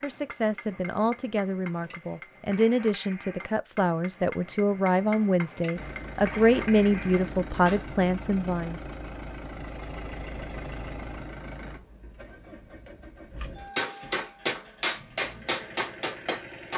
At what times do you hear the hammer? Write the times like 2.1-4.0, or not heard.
0.0-7.8, 13.4-16.7.